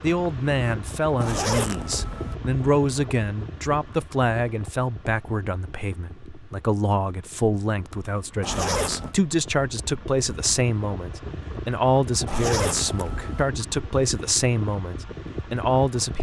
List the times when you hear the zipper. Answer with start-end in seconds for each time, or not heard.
1.2-2.4, 8.4-9.2, 12.2-13.4.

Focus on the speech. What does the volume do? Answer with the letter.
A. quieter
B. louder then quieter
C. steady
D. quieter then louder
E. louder
C.